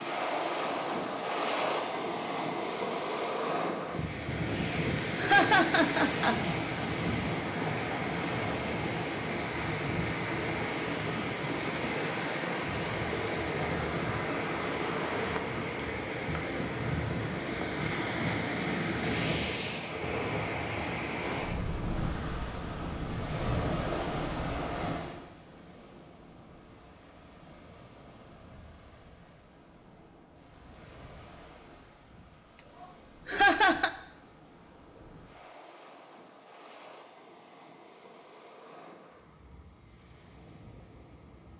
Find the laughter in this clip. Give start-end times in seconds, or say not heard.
5.2-6.4, 32.5-33.9.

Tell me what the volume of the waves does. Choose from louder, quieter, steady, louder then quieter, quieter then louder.
quieter.